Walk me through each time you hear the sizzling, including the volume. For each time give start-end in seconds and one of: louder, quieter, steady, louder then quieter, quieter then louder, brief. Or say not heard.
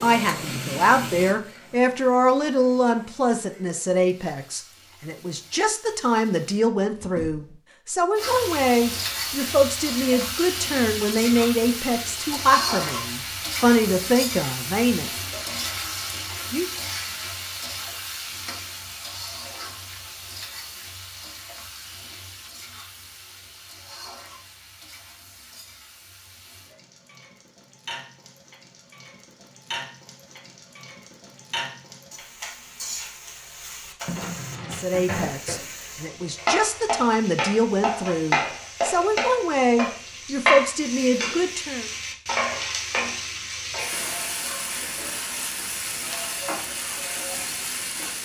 0.0-6.6 quieter
8.2-48.2 quieter then louder.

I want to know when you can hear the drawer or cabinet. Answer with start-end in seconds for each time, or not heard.
6.9-7.5, 34.1-34.9.